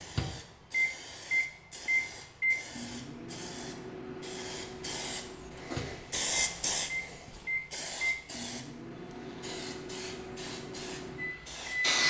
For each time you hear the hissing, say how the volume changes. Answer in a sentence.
The hissing can be heard from 0.0 to 12.0 s, getting louder then quieter.